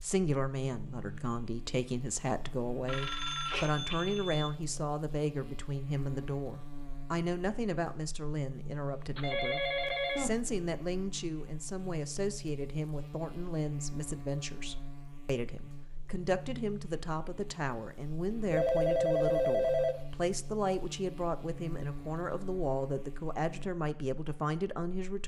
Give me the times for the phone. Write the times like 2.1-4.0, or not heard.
2.9-4.5, 9.2-10.3, 18.5-20.0.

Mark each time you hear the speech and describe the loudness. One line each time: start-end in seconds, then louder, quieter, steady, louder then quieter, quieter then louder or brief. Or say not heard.
0.0-25.2 steady.